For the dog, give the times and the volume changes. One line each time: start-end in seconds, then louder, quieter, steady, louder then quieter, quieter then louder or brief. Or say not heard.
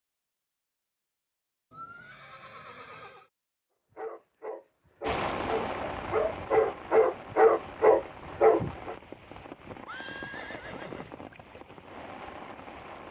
4.0-8.9 louder.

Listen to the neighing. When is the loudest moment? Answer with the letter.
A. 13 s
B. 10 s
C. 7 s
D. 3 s
B.